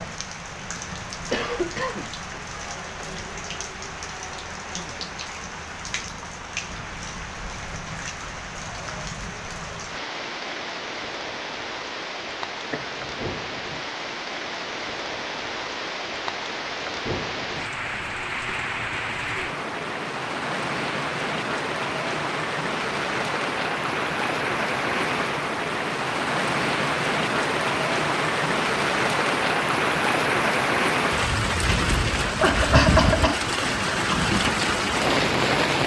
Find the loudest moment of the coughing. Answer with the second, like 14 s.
33 s.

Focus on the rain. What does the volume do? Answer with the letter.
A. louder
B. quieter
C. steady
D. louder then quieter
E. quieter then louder
A.